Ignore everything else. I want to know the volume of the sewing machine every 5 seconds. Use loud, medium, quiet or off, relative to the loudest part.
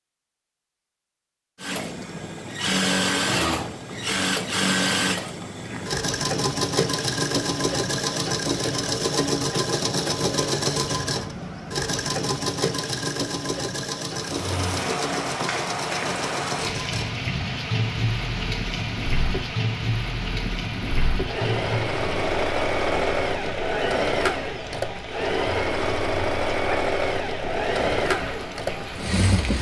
loud, loud, loud, medium, loud, loud.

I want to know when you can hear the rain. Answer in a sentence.
The rain can be heard from 14.1 to 29.5 s.